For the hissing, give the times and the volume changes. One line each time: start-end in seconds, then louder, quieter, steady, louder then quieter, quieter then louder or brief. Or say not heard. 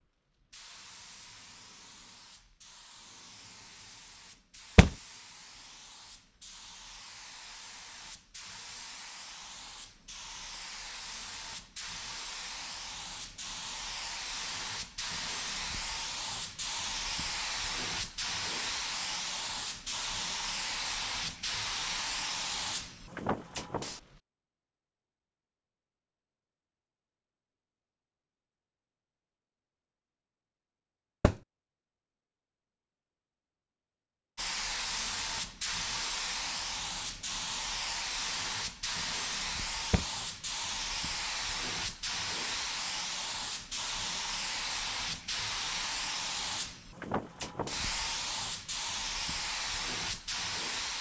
0.0-24.2 louder
34.4-50.9 steady.